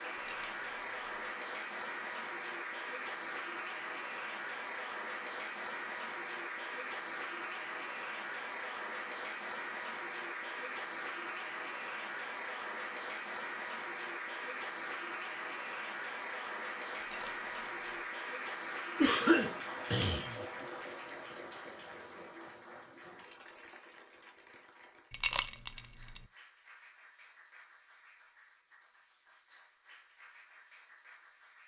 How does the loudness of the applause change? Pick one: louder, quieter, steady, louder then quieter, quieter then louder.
quieter.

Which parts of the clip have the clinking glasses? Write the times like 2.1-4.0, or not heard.
0.1-0.8, 17.0-17.7, 25.1-25.8.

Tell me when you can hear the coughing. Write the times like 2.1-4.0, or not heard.
19.0-20.4.